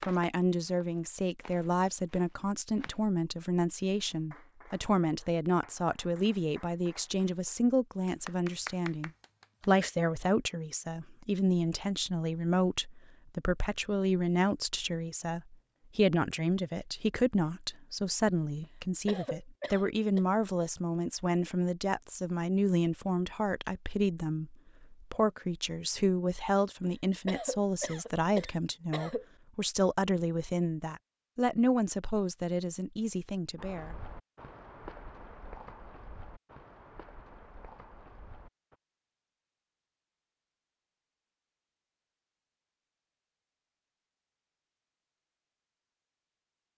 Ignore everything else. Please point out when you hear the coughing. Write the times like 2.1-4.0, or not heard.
18.6-20.2, 26.8-29.2.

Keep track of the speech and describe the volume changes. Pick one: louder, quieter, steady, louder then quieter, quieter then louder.
steady.